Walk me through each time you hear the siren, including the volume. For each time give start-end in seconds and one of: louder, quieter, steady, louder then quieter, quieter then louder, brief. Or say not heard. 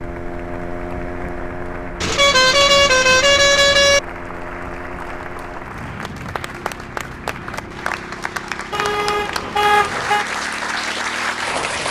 not heard.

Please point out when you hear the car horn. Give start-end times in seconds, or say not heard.
2.0-4.0, 8.7-10.2.